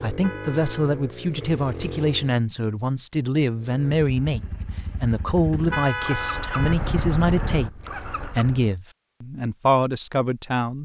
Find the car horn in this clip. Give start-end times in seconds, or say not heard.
0.2-0.9, 5.7-6.8.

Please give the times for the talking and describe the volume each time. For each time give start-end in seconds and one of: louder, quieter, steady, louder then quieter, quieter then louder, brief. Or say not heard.
0.0-10.8 steady.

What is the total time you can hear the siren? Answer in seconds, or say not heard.
not heard.